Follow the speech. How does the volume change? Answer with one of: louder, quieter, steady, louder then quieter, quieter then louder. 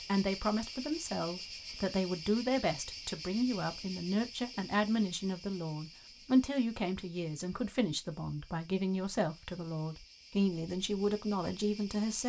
steady.